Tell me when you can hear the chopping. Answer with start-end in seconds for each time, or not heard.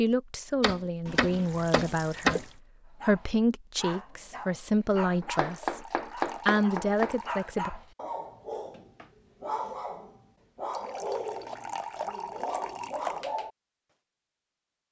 0.6-2.4, 5.2-7.2, 11.4-13.2.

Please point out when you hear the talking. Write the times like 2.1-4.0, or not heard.
0.0-5.8, 6.5-7.7.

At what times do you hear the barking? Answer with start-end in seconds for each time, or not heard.
3.0-13.5.